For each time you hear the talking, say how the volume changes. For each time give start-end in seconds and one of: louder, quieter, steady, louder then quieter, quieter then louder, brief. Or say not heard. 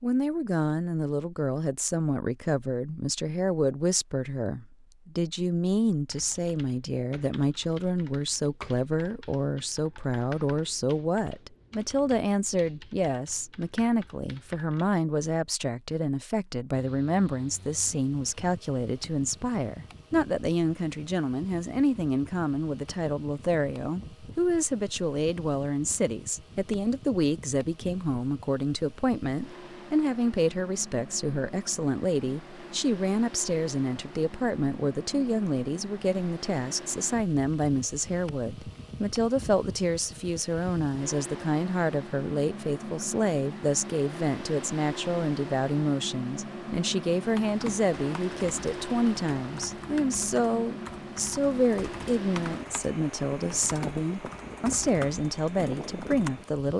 0.0-56.7 steady.